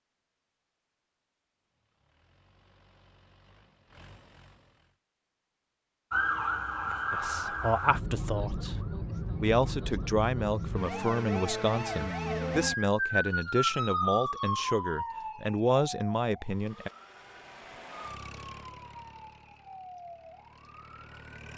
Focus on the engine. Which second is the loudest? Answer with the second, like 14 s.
18 s.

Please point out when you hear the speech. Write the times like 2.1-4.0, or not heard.
7.1-8.8, 9.4-16.9.